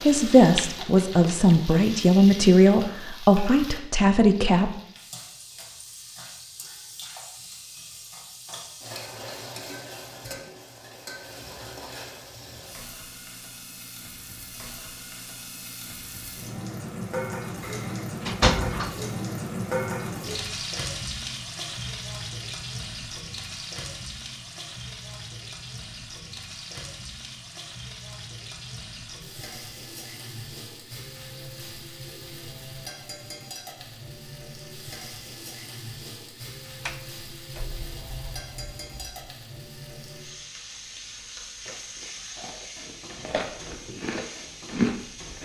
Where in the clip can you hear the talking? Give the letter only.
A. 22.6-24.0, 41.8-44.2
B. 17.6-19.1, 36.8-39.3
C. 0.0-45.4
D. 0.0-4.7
D.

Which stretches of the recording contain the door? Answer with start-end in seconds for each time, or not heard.
17.6-19.1, 36.8-39.3.